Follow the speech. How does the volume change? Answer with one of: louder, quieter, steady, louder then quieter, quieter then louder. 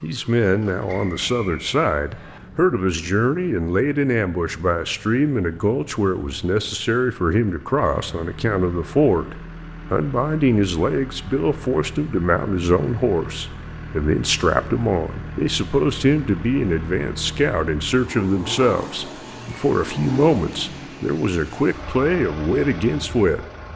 steady.